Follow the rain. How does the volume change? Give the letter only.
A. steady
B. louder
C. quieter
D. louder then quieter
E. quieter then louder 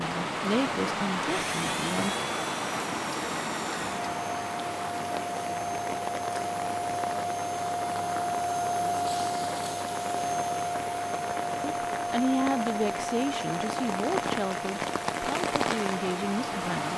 E.